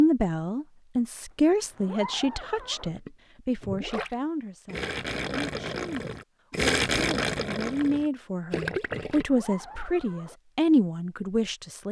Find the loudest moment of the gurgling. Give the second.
7 s.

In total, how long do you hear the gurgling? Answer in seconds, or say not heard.
6 s.